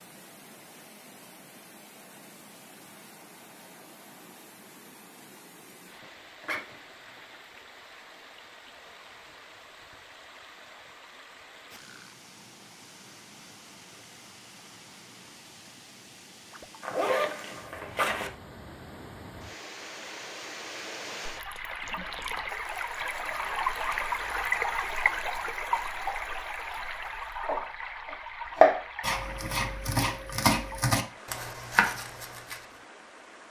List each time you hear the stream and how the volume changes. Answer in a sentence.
You can hear the stream from 0.0 to 33.4 s, getting louder then quieter.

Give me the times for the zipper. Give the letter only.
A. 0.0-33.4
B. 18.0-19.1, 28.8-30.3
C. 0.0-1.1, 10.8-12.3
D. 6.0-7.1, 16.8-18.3
D.